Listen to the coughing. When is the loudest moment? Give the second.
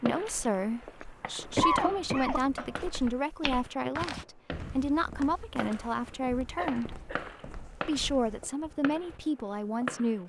2 s.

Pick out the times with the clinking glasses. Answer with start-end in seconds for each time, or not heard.
not heard.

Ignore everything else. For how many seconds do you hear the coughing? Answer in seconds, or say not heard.
3 s.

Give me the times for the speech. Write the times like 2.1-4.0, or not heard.
0.0-7.0, 7.8-10.2.